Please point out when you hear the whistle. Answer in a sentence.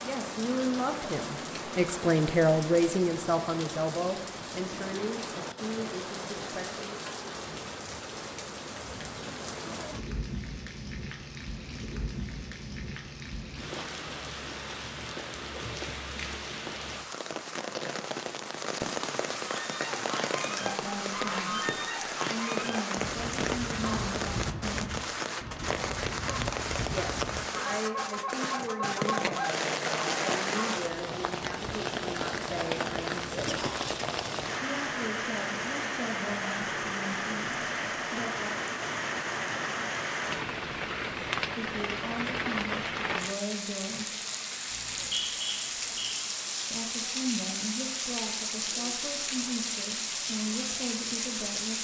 You can hear the whistle from 44.7 to 46.1 s.